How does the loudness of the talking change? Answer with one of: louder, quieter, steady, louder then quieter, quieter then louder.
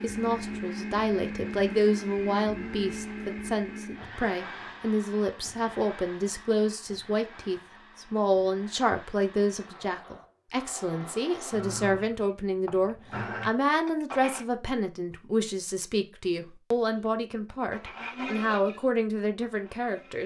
steady.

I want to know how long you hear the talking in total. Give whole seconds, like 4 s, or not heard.
20 s.